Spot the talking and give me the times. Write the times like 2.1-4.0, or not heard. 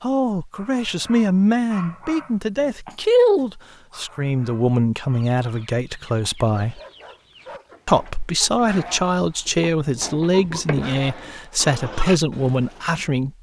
0.0-6.8, 7.8-13.3.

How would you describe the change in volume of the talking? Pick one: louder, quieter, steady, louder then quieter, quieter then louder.
steady.